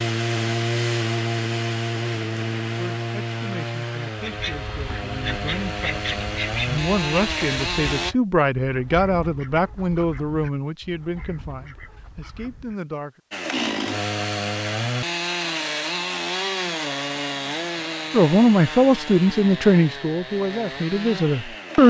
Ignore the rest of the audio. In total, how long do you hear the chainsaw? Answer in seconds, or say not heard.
17 s.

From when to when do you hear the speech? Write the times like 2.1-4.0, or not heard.
2.8-13.2, 18.1-21.8.